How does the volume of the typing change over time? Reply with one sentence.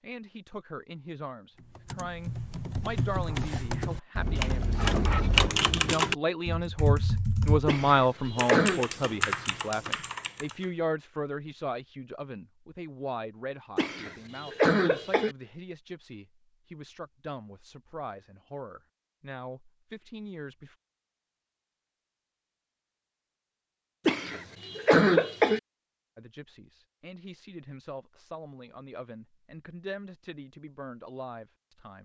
The loudness of the typing goes up, then down.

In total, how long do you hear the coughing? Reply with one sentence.
The coughing can be heard for 4 seconds in total.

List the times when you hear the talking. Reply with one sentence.
The talking can be heard from 0.0 to 20.8 s and from 26.1 to 31.9 s.